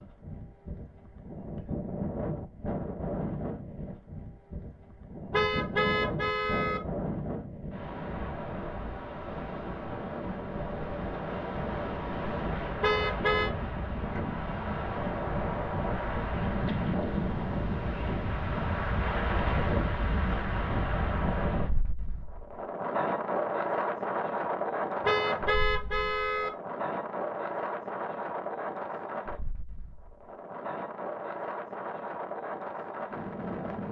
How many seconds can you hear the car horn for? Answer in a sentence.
You can hear the car horn for 4 seconds altogether.